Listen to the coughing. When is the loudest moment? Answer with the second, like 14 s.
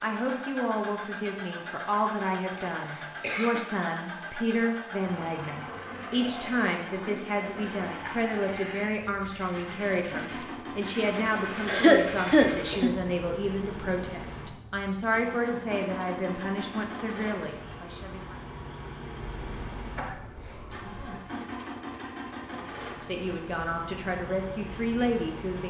12 s.